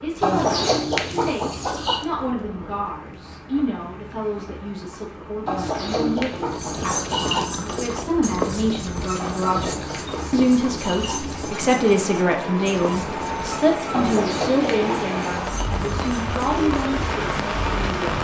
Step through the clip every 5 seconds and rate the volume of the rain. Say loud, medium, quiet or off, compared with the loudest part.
quiet, medium, loud, loud.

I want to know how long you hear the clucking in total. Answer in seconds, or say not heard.
8 s.